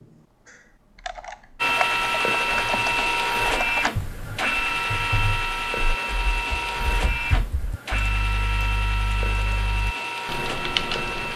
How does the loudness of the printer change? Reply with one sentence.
The volume of the printer goes down.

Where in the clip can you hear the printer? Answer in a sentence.
You can hear the printer from 1.6 to 11.3 s.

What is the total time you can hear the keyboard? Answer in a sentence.
The keyboard can be heard for 11 seconds in total.